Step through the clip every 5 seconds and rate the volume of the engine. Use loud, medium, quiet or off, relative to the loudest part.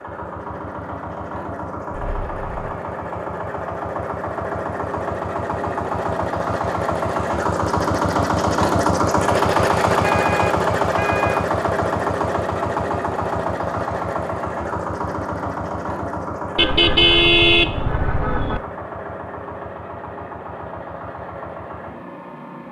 medium, loud, loud, medium, quiet.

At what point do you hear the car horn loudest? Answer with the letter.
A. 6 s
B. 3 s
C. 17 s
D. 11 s
C.